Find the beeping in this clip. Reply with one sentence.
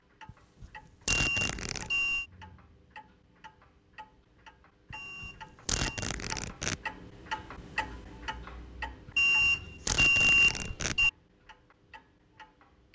The beeping can be heard from 1.1 to 2.2 s, from 4.9 to 6.2 s and from 9.2 to 11.1 s.